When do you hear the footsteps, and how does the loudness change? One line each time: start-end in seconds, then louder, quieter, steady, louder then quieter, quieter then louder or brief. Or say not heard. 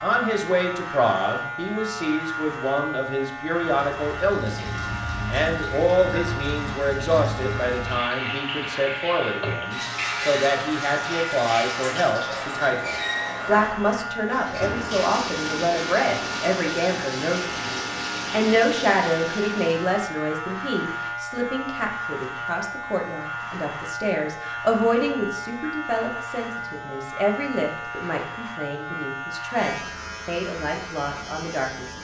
not heard.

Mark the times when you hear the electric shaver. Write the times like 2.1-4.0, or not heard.
0.0-31.9.